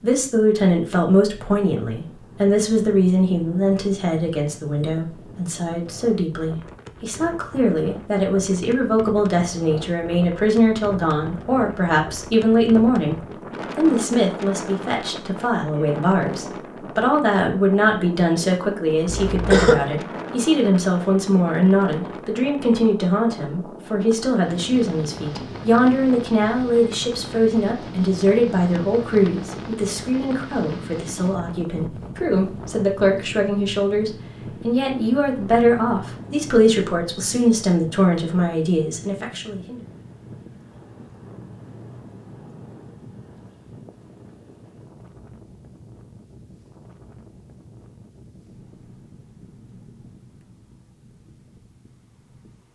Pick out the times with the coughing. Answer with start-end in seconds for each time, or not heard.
19.1-19.9.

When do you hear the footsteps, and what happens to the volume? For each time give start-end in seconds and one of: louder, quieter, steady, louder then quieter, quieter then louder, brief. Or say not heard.
not heard.